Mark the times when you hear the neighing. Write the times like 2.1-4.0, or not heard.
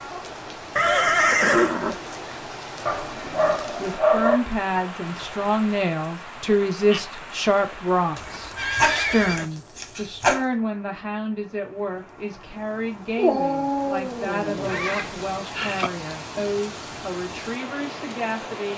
0.8-2.0, 8.2-9.4, 14.6-15.9.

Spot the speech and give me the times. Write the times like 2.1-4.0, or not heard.
3.1-18.7.